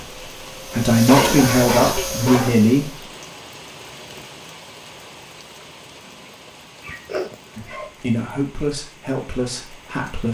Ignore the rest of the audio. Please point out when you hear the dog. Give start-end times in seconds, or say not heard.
1.1-2.6, 6.0-7.9.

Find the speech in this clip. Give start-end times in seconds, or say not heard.
0.0-3.0, 7.5-10.2.